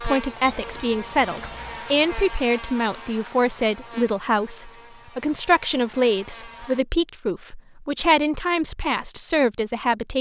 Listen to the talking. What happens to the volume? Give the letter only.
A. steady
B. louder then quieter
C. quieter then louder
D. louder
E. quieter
A.